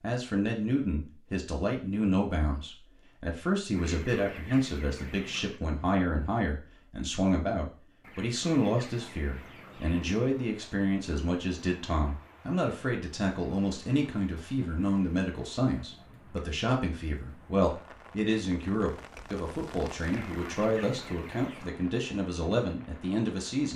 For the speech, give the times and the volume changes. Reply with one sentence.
You can hear the speech from 0.0 to 23.7 s, at a steady volume.